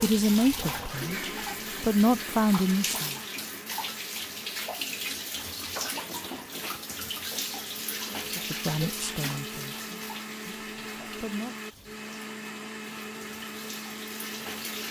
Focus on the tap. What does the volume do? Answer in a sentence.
The volume of the tap goes down.